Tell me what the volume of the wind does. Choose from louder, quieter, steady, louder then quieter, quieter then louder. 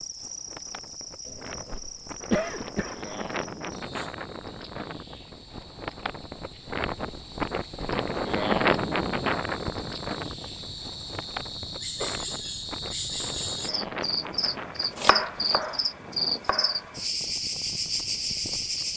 louder then quieter.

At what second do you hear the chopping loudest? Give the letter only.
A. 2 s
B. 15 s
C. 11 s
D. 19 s
B.